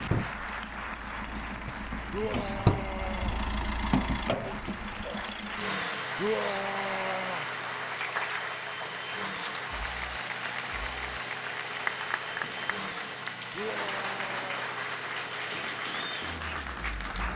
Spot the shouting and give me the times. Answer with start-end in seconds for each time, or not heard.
2.1-3.4, 6.2-7.5, 13.5-14.7.